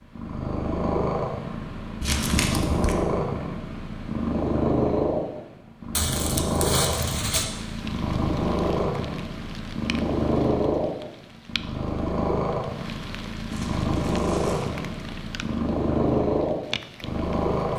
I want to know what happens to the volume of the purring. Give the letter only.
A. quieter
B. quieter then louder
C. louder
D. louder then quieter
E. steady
E.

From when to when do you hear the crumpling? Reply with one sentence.
The crumpling can be heard from 2.0 to 3.0 s, from 6.0 to 7.5 s and from 13.5 to 14.8 s.